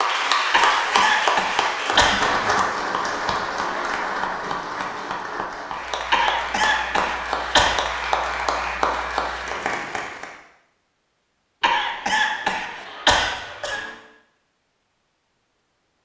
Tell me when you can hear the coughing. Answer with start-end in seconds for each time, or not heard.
0.5-2.2, 6.1-7.8, 11.6-13.9.